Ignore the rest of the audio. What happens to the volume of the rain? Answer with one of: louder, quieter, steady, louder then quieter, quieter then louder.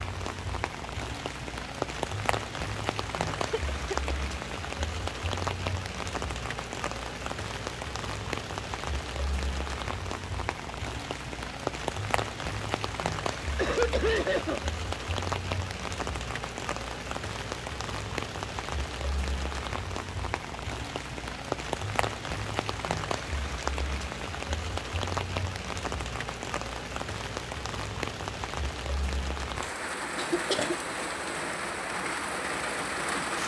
steady.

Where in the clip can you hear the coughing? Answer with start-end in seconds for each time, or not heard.
3.4-4.3, 13.6-14.7, 29.6-30.8.